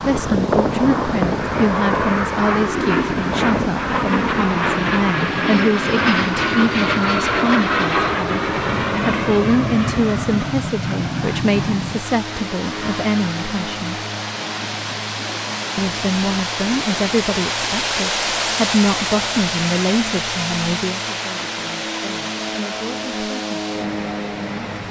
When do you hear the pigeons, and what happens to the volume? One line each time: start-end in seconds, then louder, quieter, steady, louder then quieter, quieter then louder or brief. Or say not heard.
not heard.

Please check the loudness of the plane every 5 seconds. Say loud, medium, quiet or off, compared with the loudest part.
loud, loud, medium, quiet, medium.